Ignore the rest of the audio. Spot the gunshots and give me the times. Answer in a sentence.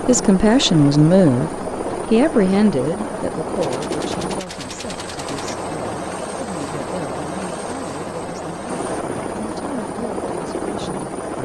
The gunshots can be heard from 3.5 to 5.5 s.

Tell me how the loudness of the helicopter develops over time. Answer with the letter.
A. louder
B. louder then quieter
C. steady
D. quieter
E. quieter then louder
C.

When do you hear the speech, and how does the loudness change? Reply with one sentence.
The speech can be heard from 0.1 to 11.4 s, getting quieter.